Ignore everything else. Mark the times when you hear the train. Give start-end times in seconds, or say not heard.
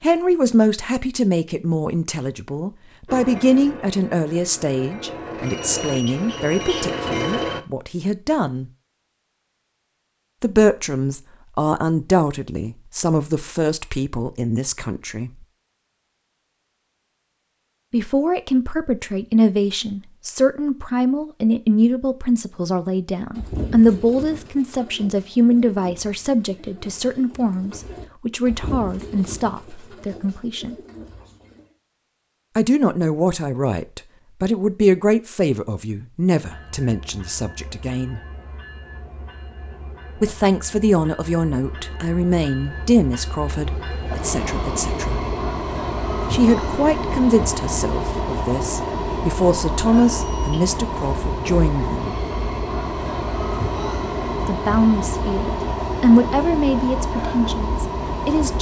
3.0-7.6, 36.4-58.5.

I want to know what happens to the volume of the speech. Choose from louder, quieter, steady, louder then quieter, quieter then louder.
steady.